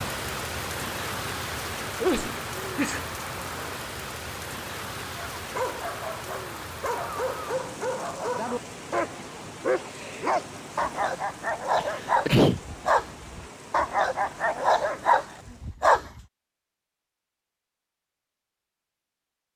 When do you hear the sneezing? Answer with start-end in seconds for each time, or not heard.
2.0-3.1, 11.8-12.6.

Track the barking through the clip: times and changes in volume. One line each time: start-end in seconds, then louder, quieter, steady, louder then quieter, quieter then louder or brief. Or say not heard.
5.3-16.2 louder.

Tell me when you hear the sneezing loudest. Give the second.
12 s.